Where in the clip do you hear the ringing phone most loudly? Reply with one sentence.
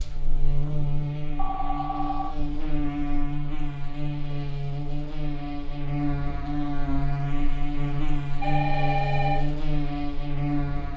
The loudest moment of the ringing phone is at 9 seconds.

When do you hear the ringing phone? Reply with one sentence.
You can hear the ringing phone from 1.4 to 2.4 s and from 8.4 to 9.4 s.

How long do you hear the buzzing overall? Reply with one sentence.
You can hear the buzzing for 11 seconds altogether.